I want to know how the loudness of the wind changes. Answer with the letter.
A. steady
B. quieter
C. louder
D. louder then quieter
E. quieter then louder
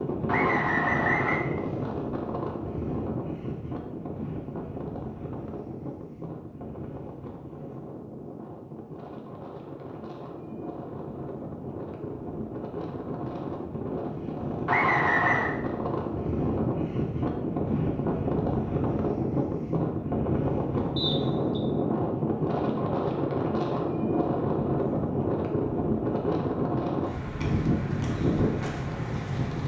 E.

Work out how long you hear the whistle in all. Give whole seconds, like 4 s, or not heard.
3 s.